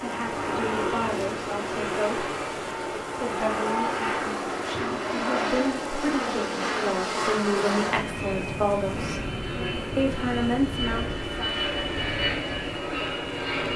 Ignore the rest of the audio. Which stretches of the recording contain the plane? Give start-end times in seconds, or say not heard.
0.0-13.7.